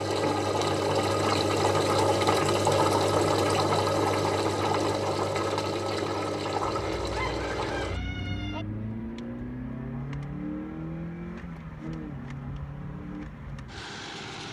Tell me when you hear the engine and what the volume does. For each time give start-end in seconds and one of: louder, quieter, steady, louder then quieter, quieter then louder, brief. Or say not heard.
0.0-14.4 quieter.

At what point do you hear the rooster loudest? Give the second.
7 s.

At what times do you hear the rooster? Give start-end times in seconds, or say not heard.
6.6-8.7.